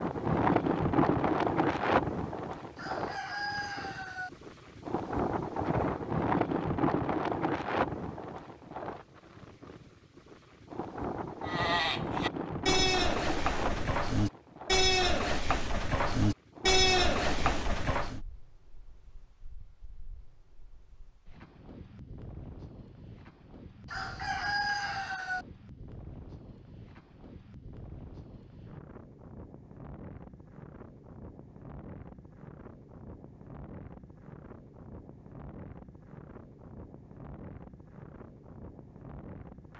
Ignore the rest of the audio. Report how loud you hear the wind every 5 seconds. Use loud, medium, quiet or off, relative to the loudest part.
loud, loud, medium, quiet, quiet, quiet, quiet, quiet.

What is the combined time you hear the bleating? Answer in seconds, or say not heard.
7 s.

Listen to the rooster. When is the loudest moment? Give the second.
25 s.